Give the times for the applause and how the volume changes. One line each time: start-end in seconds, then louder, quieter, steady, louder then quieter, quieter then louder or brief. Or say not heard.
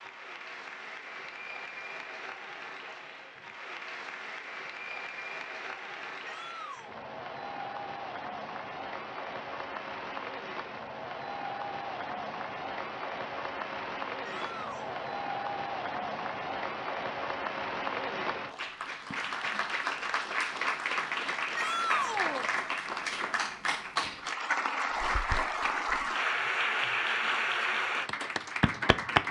0.0-29.2 louder.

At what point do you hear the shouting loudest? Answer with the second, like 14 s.
22 s.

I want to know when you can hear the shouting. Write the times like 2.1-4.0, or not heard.
6.2-7.0, 14.2-15.1, 21.6-22.5.